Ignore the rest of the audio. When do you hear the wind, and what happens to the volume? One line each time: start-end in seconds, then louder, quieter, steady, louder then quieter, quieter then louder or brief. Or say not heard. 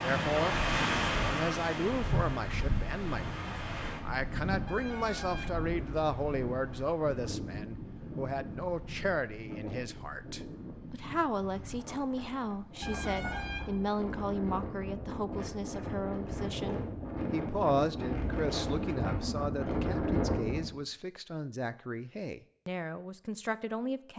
0.0-20.7 quieter then louder.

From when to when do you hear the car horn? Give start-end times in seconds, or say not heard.
4.7-6.0, 12.8-13.9.